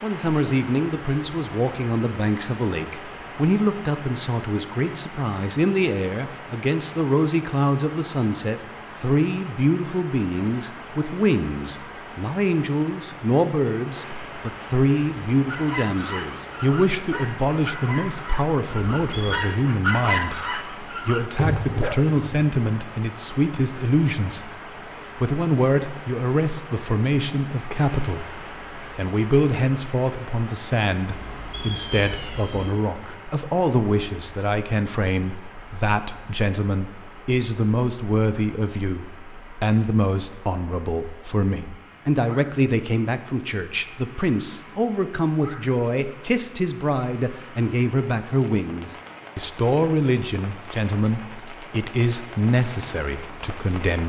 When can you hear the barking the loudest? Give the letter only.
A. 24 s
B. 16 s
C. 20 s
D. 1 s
C.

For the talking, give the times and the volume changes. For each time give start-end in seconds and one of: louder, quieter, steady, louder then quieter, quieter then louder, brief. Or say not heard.
0.0-24.5 steady
25.1-54.0 steady.